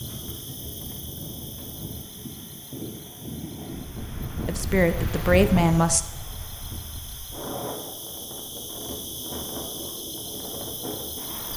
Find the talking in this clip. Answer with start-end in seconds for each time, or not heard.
4.5-6.0.